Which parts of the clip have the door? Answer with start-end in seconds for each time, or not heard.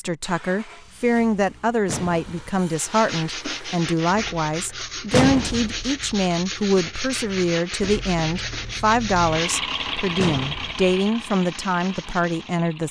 1.9-2.5, 5.1-5.9, 10.2-10.8.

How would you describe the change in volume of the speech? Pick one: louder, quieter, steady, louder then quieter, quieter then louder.
steady.